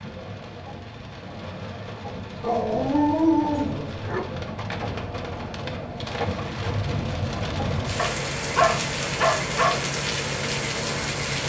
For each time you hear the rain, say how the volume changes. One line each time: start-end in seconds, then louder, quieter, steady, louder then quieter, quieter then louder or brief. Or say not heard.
0.0-11.4 louder.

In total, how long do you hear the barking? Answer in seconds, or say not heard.
4 s.